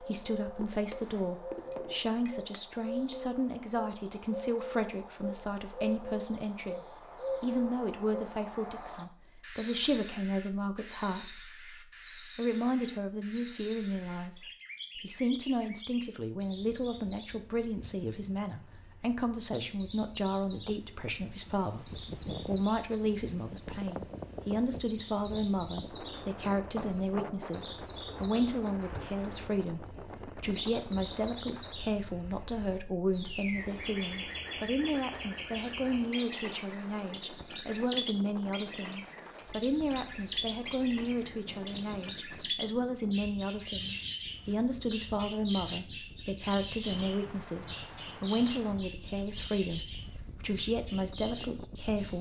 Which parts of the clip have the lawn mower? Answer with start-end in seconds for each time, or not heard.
not heard.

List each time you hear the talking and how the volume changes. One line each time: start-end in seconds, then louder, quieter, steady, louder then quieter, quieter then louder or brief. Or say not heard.
0.0-52.1 steady.